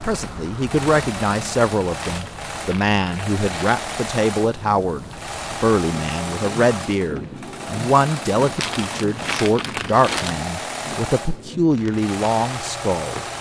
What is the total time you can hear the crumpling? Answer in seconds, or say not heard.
4 s.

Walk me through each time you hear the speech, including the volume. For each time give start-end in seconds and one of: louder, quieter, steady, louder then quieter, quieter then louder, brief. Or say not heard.
0.0-13.2 steady.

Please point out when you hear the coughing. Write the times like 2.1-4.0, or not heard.
not heard.